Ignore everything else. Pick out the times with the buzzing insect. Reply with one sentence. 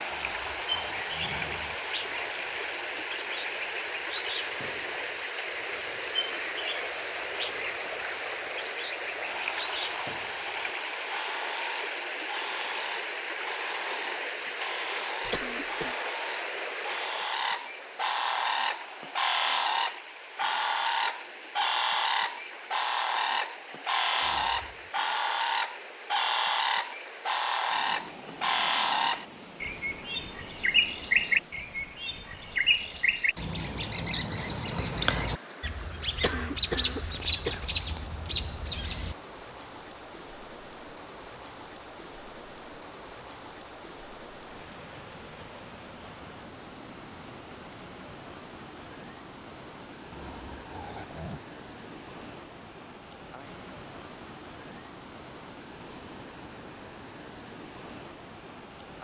You can't hear the buzzing insect here.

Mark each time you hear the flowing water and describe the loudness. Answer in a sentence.
You can hear the flowing water from 0.0 to 58.9 s, getting quieter.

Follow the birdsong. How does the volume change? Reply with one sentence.
The volume of the birdsong goes up.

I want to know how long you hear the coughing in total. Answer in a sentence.
The coughing can be heard for 2 seconds in total.